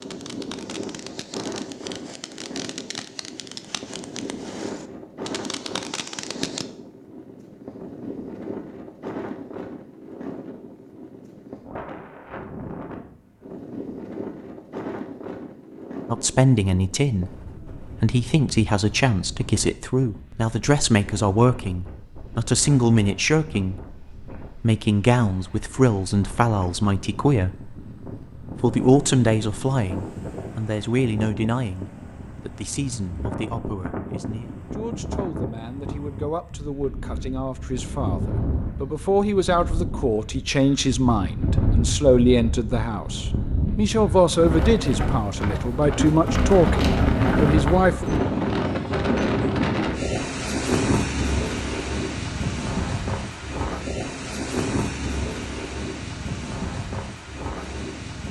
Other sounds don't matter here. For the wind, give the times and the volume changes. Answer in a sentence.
You can hear the wind from 0.0 to 58.2 s, getting louder.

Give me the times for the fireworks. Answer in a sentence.
The fireworks can be heard from 0.0 to 6.7 s.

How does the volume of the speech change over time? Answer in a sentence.
The volume of the speech goes down, then up.